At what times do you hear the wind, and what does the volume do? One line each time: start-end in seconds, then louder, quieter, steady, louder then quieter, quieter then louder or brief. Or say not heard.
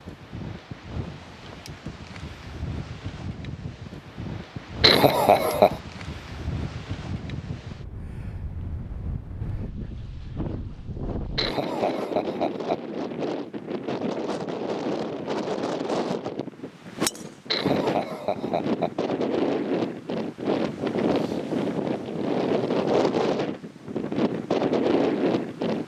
0.0-25.8 louder.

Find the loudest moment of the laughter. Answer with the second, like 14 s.
5 s.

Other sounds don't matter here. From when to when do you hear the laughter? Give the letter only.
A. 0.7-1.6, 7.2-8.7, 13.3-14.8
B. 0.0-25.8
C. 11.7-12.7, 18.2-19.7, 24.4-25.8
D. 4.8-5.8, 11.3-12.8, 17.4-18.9
D.